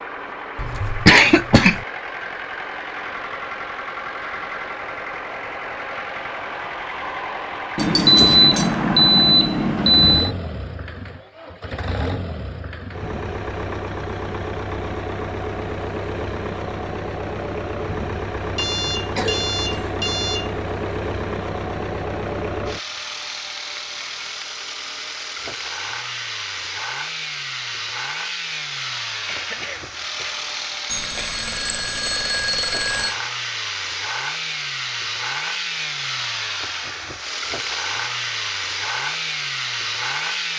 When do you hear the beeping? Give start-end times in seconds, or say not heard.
7.8-10.3, 18.6-20.6, 30.9-33.1.